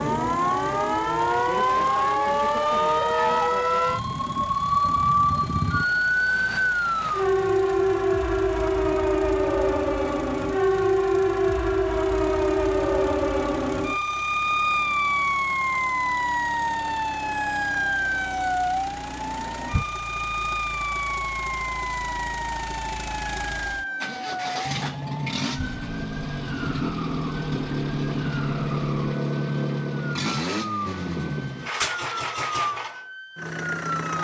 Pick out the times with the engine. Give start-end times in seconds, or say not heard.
0.0-34.1.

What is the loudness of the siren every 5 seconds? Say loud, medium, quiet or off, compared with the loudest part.
loud, loud, loud, loud, medium, quiet, medium.